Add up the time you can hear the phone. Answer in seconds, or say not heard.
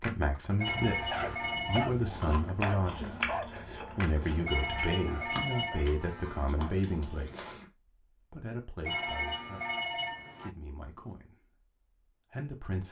5 s.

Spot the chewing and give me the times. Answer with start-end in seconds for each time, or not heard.
0.7-7.7.